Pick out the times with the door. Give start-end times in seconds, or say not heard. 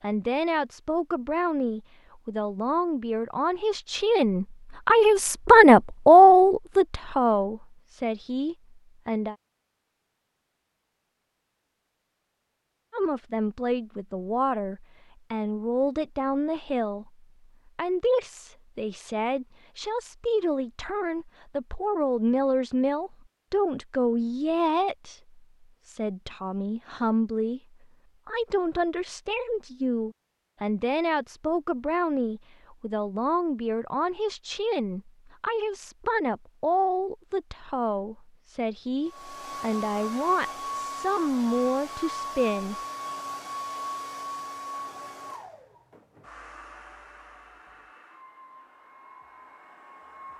not heard.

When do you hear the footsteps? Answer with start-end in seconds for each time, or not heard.
not heard.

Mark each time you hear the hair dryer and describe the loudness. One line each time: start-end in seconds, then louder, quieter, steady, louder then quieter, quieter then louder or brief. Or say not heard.
39.0-50.3 quieter.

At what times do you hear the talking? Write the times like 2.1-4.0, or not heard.
0.0-9.3, 12.9-27.6, 28.2-42.8.